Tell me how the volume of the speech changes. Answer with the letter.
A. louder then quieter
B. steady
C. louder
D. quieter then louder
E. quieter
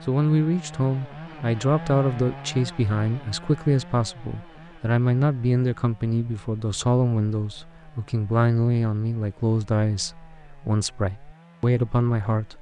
B.